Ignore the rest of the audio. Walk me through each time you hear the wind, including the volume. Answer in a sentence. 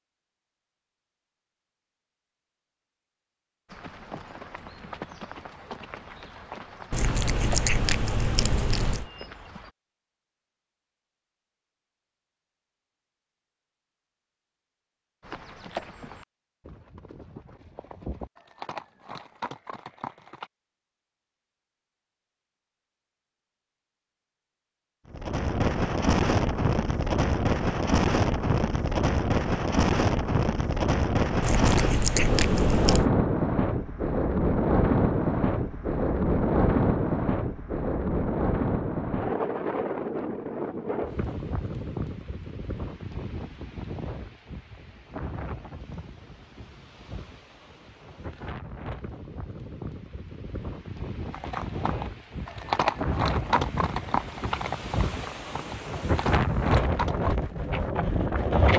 The wind can be heard from 25.1 to 58.7 s, getting quieter then louder.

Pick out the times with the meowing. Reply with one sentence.
The meowing can be heard from 6.9 to 9.1 s and from 31.4 to 33.1 s.